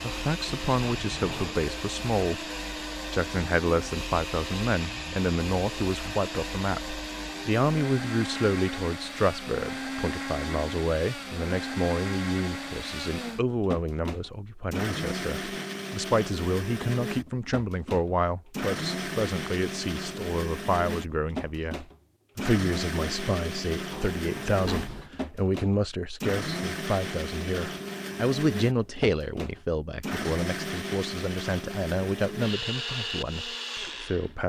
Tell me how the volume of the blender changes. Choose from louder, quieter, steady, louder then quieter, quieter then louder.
steady.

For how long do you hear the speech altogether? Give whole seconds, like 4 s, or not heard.
34 s.